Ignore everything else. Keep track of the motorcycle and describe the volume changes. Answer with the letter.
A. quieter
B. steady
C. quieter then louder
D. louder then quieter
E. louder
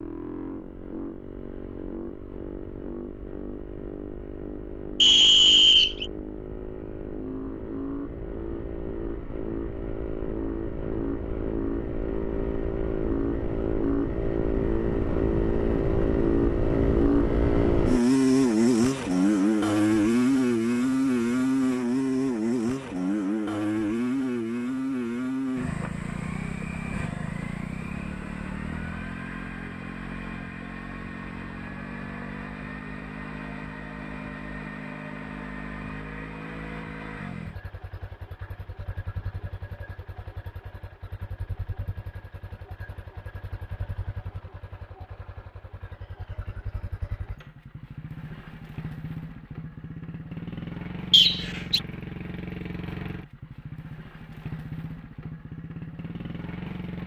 D.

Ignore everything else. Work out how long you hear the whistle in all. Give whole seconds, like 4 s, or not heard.
2 s.